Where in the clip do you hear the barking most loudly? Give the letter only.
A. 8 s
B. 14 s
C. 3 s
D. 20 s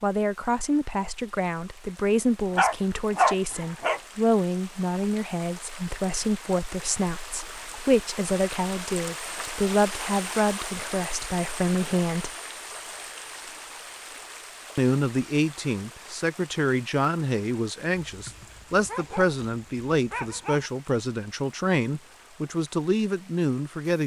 C.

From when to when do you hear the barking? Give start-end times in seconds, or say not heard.
2.5-4.0, 17.9-20.7.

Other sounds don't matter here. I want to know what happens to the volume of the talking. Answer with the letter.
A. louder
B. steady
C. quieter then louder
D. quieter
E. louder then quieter
B.